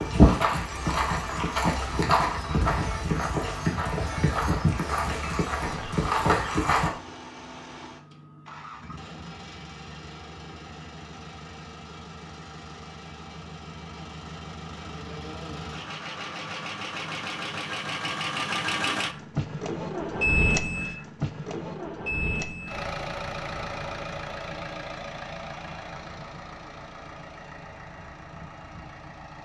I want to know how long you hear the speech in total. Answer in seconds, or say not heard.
not heard.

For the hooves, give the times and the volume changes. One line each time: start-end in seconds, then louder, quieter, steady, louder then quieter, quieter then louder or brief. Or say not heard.
0.0-6.9 steady.